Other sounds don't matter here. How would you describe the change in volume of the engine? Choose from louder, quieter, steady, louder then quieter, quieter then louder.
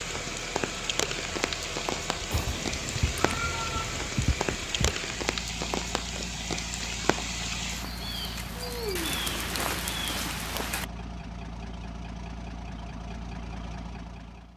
steady.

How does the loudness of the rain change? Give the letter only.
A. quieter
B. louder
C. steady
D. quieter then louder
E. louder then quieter
C.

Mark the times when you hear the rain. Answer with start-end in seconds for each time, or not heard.
0.0-10.8.